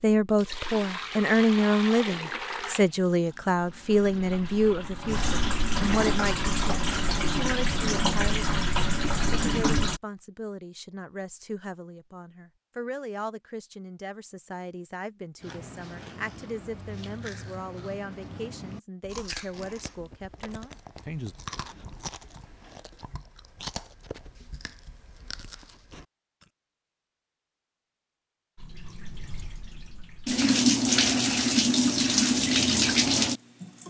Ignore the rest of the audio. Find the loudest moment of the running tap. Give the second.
31 s.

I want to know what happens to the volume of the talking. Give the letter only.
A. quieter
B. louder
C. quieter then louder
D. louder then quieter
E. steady
A.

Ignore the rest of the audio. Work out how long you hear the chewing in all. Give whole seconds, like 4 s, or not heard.
11 s.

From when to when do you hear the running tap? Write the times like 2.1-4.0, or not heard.
0.2-10.0, 28.6-33.8.